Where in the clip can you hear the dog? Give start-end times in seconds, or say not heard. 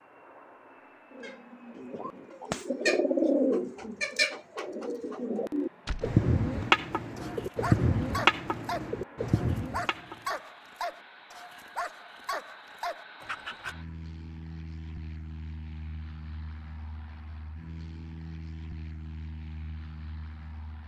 7.2-13.8.